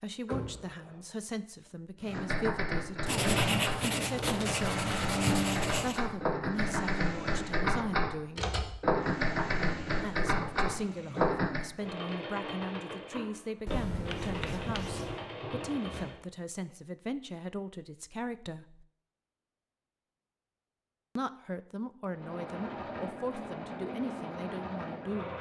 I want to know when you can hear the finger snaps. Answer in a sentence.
You can't hear the finger snaps here.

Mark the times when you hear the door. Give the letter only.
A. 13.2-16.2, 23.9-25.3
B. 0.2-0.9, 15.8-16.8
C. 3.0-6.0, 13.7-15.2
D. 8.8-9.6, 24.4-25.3
B.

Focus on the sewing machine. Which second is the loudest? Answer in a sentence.
The volume of the sewing machine peaks at 5 seconds.